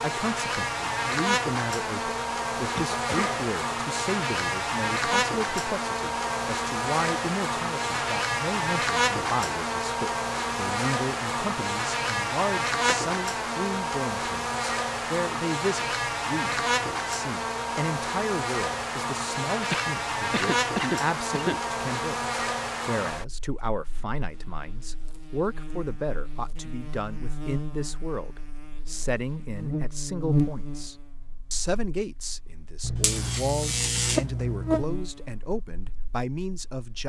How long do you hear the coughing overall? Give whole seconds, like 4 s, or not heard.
3 s.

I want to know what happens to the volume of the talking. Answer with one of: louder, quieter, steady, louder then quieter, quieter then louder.
steady.